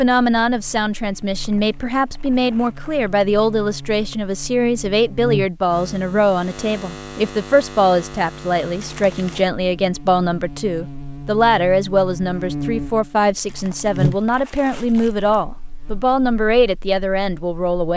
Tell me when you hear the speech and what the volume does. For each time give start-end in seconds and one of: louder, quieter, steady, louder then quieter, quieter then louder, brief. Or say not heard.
0.0-17.9 steady.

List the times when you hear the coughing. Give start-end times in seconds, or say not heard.
not heard.